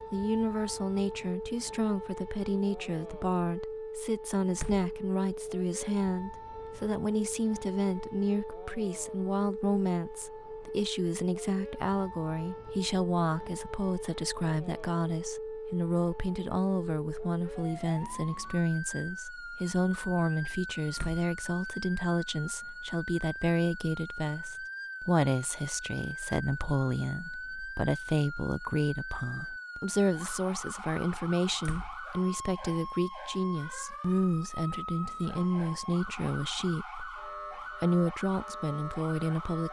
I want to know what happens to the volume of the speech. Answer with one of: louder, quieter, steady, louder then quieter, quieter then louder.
steady.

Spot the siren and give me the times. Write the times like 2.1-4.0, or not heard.
0.0-39.6.